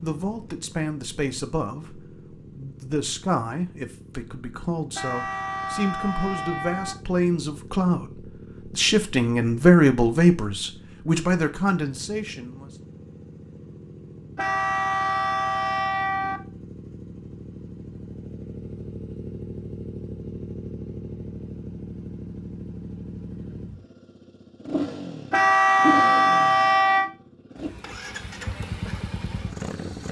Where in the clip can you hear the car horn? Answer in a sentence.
The car horn can be heard from 5.0 to 7.0 s, from 14.3 to 16.4 s and from 25.3 to 27.1 s.